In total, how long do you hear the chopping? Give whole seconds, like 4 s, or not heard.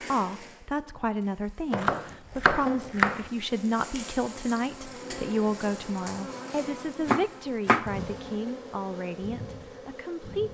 3 s.